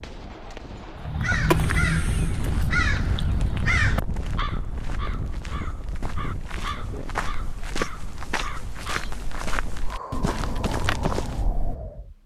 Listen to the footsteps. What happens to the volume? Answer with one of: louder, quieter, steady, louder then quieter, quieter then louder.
louder.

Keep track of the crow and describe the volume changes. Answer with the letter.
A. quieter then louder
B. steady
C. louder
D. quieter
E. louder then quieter
D.